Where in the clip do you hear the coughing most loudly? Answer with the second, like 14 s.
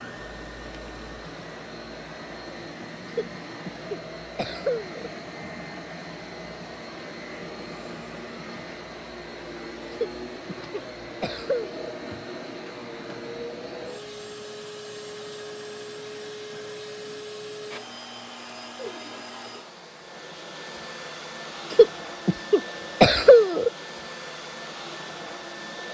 23 s.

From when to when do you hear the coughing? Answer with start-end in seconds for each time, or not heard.
3.1-5.1, 9.9-11.9, 21.7-23.7.